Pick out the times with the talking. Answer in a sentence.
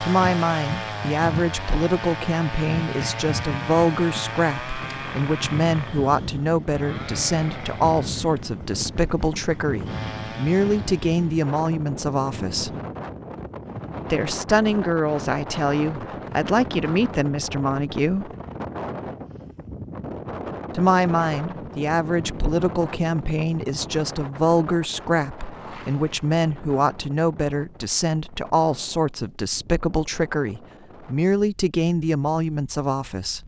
You can hear the talking from 0.0 to 12.7 s, from 14.1 to 18.3 s and from 20.7 to 33.4 s.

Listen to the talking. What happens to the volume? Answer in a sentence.
The loudness of the talking stays about the same.